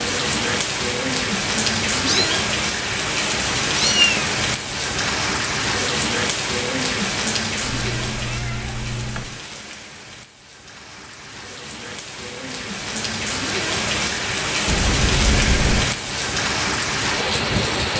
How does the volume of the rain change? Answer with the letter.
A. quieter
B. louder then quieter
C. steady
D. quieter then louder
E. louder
D.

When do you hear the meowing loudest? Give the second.
4 s.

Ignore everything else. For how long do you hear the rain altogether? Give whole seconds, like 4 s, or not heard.
18 s.